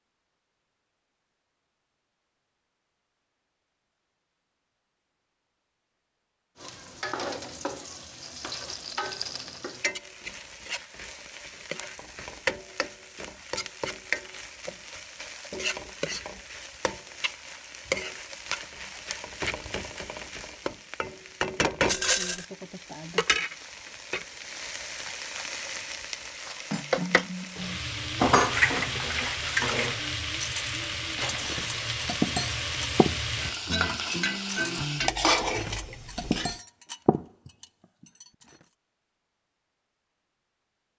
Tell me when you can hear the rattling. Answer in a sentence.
The rattling can be heard from 8.2 to 9.6 s and from 21.9 to 22.4 s.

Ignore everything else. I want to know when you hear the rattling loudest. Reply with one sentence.
The volume of the rattling peaks at 22 seconds.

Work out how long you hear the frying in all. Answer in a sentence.
The frying can be heard for 30 seconds in total.